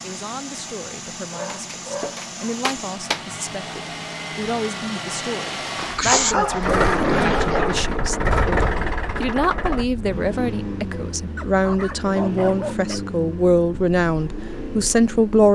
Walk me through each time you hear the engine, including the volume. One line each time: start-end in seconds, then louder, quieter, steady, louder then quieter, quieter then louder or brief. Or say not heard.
0.0-15.5 louder then quieter.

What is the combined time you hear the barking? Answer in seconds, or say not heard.
6 s.